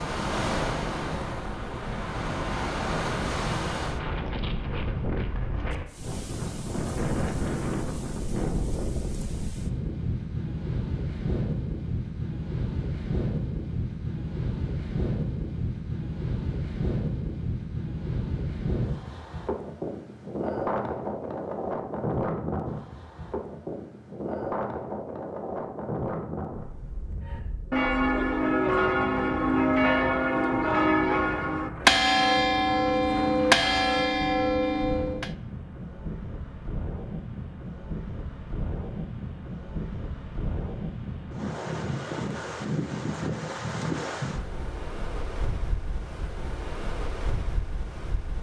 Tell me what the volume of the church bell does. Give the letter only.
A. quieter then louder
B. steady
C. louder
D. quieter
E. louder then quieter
B.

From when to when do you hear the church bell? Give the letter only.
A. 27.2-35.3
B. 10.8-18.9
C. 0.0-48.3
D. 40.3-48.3
A.